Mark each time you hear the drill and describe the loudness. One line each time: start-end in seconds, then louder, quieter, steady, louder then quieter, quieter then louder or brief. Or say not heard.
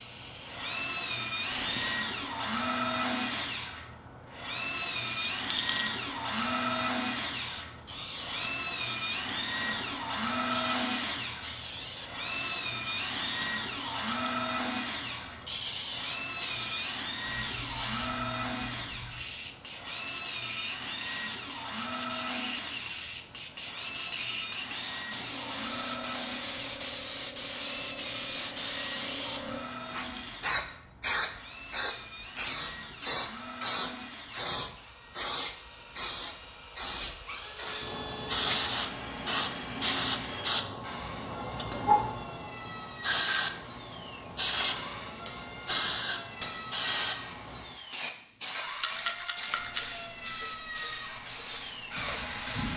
0.0-52.7 quieter.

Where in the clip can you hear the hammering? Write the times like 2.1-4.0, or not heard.
45.2-46.8.